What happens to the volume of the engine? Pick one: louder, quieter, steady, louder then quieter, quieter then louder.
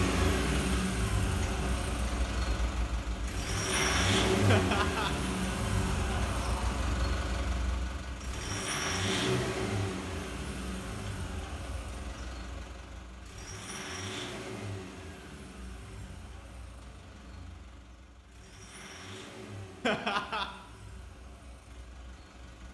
quieter.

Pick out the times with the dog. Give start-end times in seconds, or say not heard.
not heard.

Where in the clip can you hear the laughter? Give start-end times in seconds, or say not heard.
4.5-5.1, 19.8-20.4.